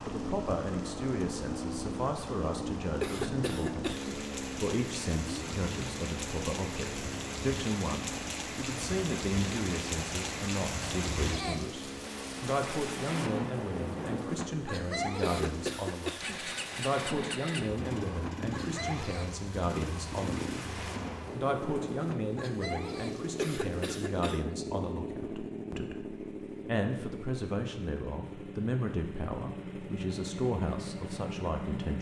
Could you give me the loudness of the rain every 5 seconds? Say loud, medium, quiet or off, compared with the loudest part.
medium, loud, loud, loud, medium, off, off.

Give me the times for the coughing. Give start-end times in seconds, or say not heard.
3.0-4.2, 15.2-16.4, 23.4-24.6.